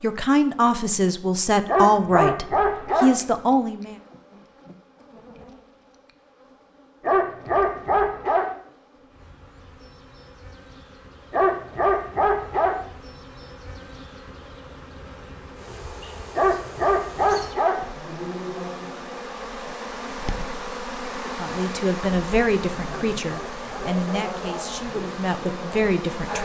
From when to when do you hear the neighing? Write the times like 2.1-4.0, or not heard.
not heard.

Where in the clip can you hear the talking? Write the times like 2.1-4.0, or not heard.
0.0-4.0, 21.2-26.4.